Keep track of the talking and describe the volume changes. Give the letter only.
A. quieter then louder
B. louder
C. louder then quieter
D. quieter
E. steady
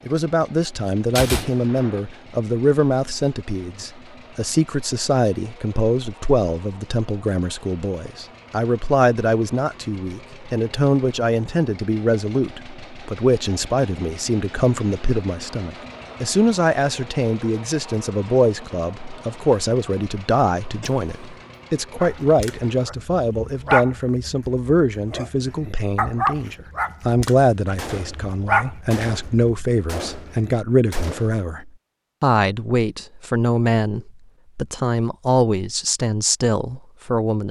E.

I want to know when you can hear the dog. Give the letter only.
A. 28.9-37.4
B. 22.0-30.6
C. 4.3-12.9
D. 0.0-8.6
B.